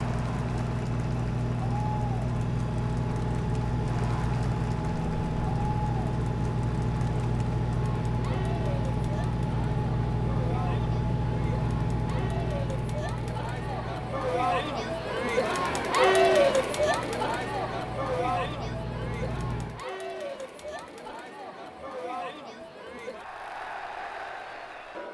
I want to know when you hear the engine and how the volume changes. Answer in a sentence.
The engine can be heard from 0.0 to 19.9 s, getting quieter.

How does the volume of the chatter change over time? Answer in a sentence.
The volume of the chatter goes up, then down.